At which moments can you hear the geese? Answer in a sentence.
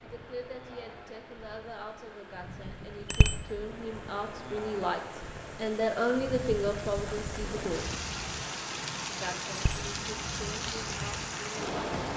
You can't hear the geese here.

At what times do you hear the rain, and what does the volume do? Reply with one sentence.
The rain can be heard from 0.0 to 12.1 s, getting louder.